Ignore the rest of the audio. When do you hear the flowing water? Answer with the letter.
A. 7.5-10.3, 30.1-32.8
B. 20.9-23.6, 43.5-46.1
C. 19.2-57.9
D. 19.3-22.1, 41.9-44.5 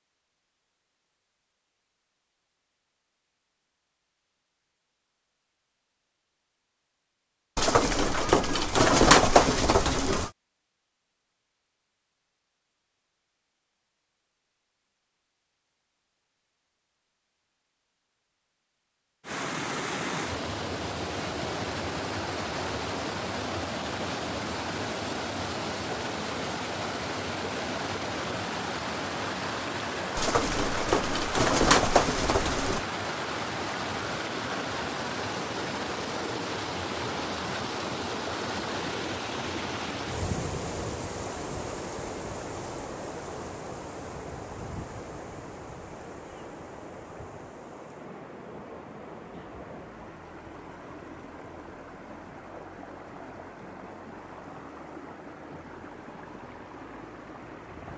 C.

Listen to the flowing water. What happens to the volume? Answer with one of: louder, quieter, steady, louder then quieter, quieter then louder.
quieter.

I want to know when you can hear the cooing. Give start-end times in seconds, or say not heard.
7.5-10.3, 30.1-32.8.